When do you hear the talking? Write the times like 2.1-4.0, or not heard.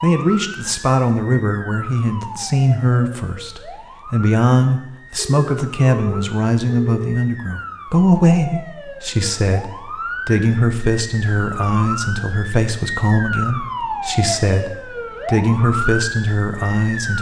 0.0-17.1.